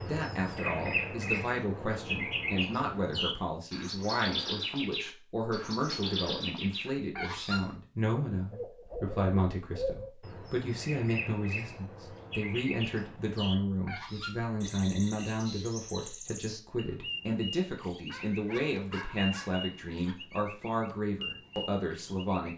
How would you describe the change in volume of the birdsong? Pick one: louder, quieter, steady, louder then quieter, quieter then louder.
quieter.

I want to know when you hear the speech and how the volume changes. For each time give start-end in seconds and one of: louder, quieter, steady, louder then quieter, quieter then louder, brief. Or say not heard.
0.0-22.5 steady.